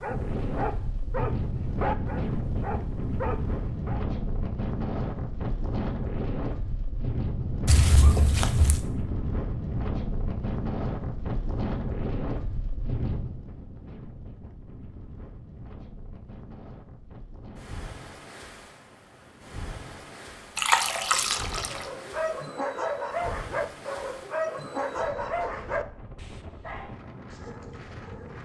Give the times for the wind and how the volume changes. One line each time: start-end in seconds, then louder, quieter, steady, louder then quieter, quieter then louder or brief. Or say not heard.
0.0-28.4 quieter.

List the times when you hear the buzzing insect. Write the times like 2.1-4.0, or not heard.
not heard.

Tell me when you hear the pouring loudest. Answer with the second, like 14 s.
21 s.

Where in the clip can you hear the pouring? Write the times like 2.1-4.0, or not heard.
7.7-8.8, 20.6-21.9.